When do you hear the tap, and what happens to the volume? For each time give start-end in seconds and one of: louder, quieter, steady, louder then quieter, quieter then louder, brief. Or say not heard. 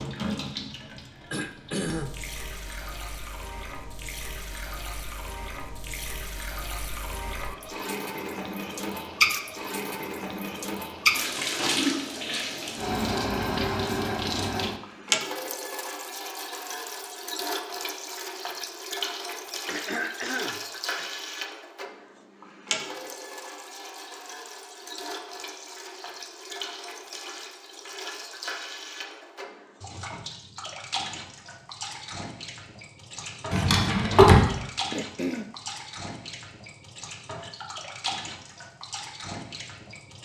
0.0-40.1 louder then quieter.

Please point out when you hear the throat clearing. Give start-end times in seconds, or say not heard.
1.3-2.1, 19.6-21.1, 34.9-35.5.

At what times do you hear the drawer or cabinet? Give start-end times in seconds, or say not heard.
33.5-34.5.